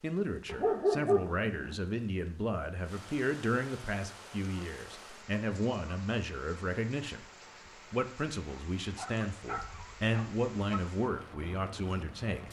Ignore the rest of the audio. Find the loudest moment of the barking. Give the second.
1 s.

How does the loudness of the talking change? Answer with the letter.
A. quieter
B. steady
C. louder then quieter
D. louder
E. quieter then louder
B.